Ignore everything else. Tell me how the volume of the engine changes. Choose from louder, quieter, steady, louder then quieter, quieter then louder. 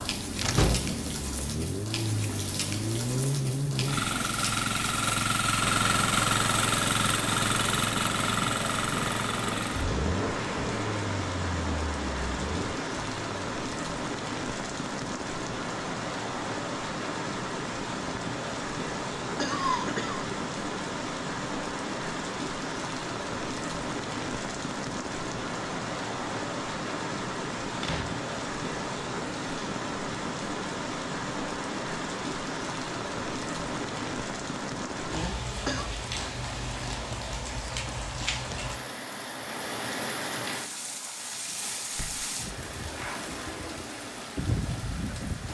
louder then quieter.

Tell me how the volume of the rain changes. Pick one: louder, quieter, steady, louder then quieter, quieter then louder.
steady.